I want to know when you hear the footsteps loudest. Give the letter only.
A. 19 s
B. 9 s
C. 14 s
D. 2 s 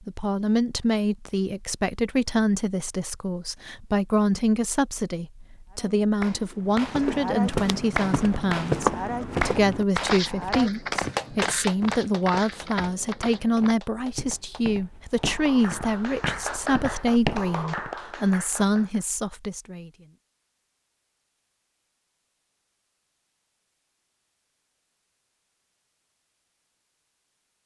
B.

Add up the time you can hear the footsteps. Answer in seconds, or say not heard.
11 s.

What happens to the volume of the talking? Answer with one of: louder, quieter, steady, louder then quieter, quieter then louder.
steady.